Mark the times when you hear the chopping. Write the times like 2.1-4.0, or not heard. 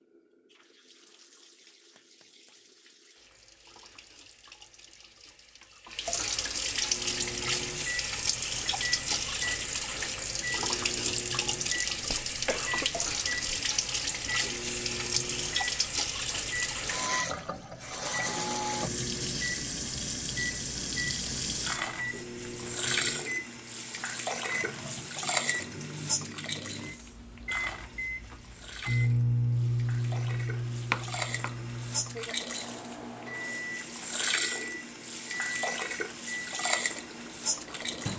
30.9-31.6.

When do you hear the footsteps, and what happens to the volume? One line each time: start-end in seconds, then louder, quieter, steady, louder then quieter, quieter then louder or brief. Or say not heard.
not heard.